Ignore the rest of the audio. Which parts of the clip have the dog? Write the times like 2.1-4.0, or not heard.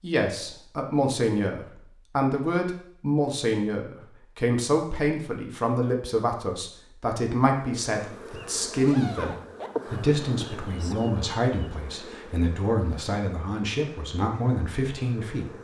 not heard.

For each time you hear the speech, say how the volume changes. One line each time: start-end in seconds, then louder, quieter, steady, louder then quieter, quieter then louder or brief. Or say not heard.
0.0-15.5 steady.